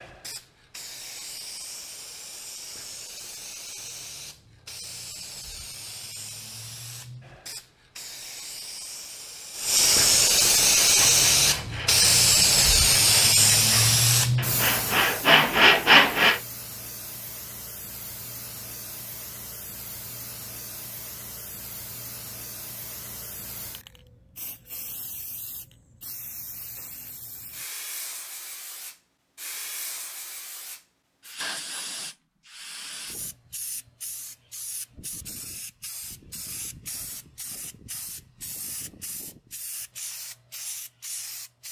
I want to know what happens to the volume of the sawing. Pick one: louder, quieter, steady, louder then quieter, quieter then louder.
louder.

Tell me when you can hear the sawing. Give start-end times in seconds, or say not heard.
10.8-16.4.